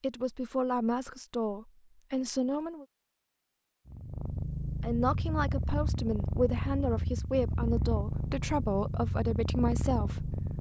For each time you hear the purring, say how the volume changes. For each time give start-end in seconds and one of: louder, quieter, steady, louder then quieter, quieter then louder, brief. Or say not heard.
3.9-10.5 steady.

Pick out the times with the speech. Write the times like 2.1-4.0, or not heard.
0.0-2.9, 4.8-10.4.